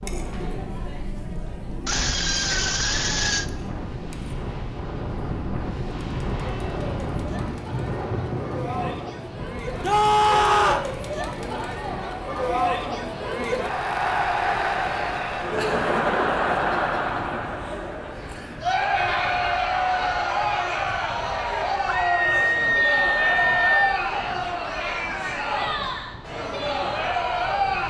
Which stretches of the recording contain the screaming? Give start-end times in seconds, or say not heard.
1.9-3.5, 9.8-10.9, 21.9-24.0.